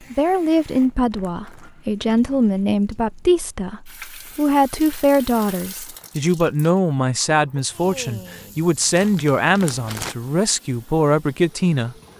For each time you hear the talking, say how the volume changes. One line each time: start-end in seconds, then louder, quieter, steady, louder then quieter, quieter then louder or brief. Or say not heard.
0.1-11.9 steady.